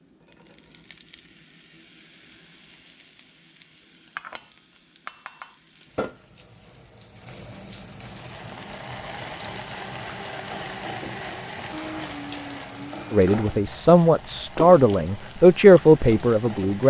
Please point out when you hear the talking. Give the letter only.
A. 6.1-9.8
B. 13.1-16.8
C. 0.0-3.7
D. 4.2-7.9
B.